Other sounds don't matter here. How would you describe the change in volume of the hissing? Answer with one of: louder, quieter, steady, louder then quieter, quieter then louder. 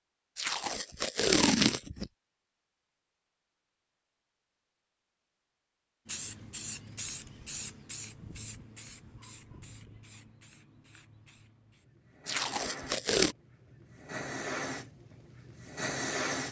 quieter then louder.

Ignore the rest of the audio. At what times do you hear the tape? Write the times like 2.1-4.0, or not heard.
0.3-2.1, 12.2-13.3.